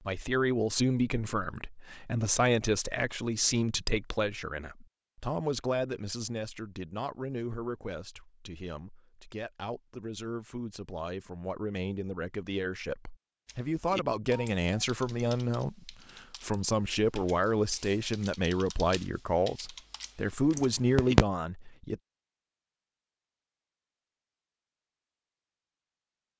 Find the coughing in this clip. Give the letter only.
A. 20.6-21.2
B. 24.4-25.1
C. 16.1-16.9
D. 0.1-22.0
A.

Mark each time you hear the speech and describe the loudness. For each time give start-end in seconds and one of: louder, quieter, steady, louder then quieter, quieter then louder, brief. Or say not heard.
0.1-22.0 quieter then louder.